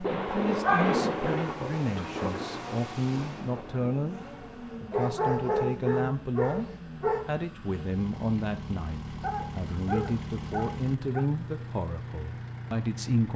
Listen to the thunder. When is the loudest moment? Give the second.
1 s.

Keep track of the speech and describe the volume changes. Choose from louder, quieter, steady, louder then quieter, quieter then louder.
steady.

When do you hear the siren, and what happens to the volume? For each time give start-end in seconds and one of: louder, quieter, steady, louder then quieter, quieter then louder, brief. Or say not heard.
not heard.